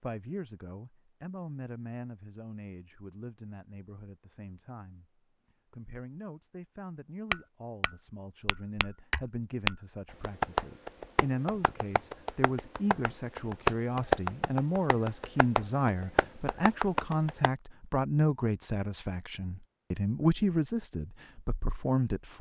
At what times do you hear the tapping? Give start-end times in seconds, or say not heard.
7.3-17.5.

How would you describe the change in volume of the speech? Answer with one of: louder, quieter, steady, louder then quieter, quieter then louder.
louder.